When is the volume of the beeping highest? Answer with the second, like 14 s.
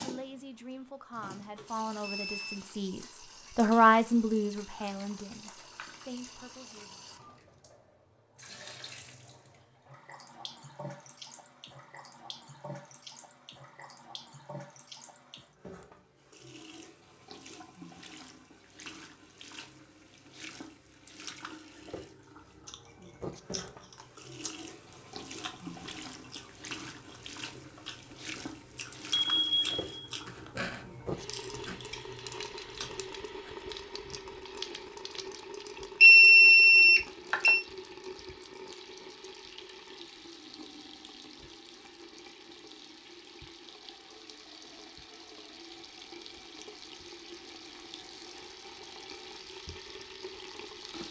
36 s.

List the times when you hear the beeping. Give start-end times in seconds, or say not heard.
1.6-2.7, 29.1-30.5, 36.0-37.6.